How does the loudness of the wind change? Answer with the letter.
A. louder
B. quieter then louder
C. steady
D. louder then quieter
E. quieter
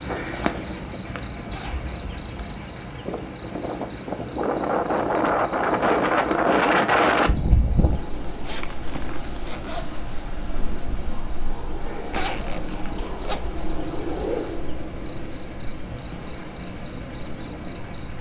D.